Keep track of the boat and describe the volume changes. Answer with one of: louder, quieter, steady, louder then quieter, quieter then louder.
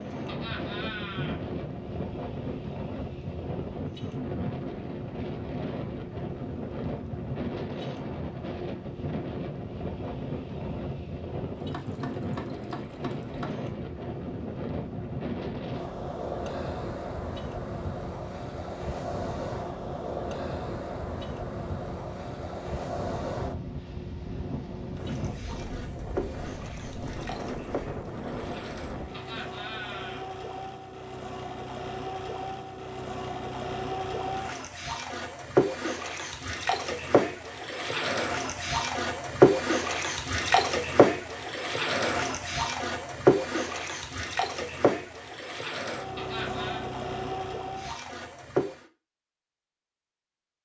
louder.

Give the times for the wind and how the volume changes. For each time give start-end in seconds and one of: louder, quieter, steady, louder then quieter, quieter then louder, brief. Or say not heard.
0.0-29.6 steady.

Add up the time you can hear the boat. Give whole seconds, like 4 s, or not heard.
49 s.